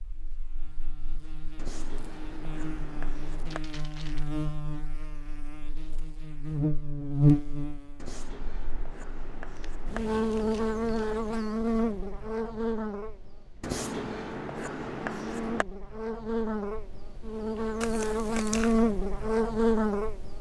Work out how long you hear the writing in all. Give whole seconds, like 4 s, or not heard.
6 s.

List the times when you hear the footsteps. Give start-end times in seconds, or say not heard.
not heard.